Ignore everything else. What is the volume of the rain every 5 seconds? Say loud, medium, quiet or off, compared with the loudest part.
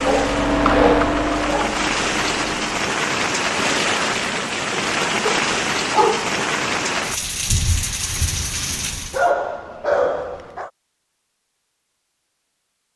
loud, loud, off.